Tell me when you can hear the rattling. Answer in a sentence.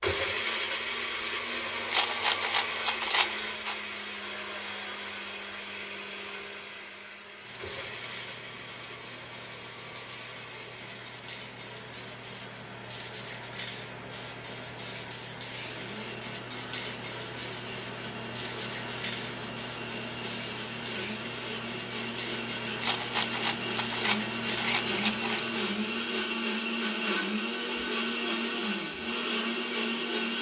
The rattling can be heard from 1.9 to 3.8 s and from 22.8 to 25.4 s.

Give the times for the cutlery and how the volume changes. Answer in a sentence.
You can't hear the cutlery here.